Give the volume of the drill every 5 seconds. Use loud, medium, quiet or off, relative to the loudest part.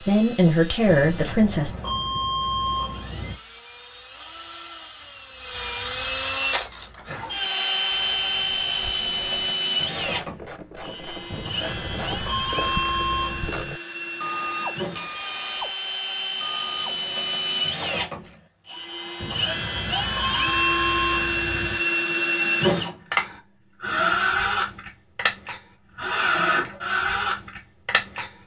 quiet, loud, medium, medium, loud, loud.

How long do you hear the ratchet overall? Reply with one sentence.
You can hear the ratchet for 12 seconds altogether.